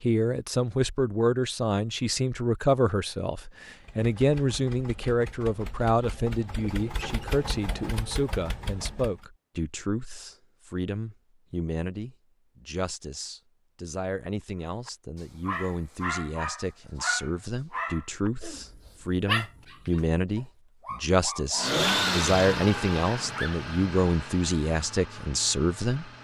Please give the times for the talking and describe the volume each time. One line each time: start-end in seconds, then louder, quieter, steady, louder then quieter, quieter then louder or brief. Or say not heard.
0.0-26.1 quieter then louder.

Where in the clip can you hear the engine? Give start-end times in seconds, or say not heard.
3.8-9.2, 21.6-26.1.